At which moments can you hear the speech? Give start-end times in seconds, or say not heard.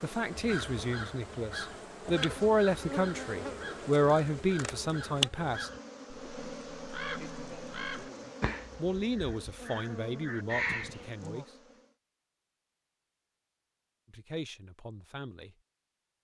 0.0-5.7, 8.8-11.4, 14.1-15.6.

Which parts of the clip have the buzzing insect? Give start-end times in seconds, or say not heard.
0.0-11.9.